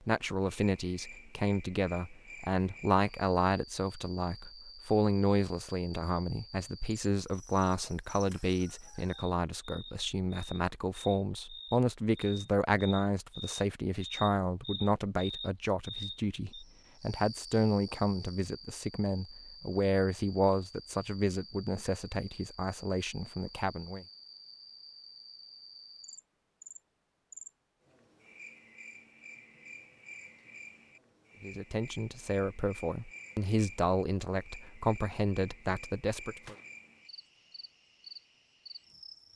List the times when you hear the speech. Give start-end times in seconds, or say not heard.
0.1-24.1, 31.4-36.5.